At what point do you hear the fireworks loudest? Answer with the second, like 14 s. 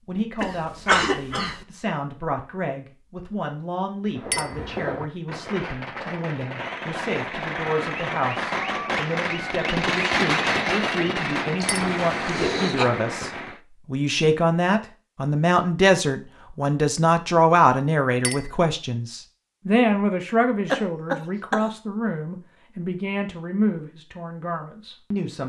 10 s.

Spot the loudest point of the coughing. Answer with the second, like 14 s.
1 s.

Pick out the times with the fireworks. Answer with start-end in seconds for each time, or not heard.
4.1-13.6.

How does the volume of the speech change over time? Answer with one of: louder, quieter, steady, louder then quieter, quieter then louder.
louder then quieter.